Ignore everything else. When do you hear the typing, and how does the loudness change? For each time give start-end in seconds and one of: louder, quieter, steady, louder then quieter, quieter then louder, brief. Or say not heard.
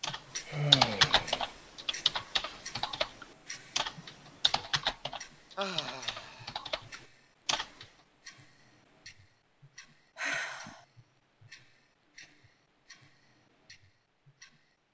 0.0-7.8 quieter.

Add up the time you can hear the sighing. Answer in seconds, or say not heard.
3 s.